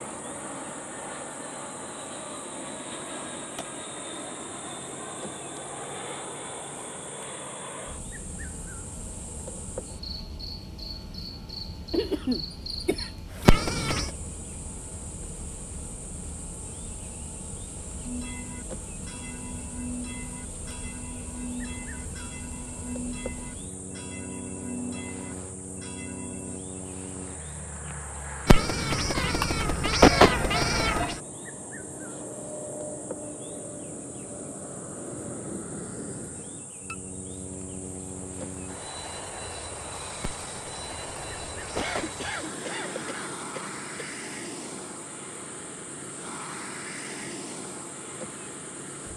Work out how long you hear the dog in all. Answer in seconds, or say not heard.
not heard.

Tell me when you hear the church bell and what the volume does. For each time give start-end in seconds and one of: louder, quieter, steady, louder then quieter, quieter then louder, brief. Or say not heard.
18.0-26.6 steady.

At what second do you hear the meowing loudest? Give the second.
30 s.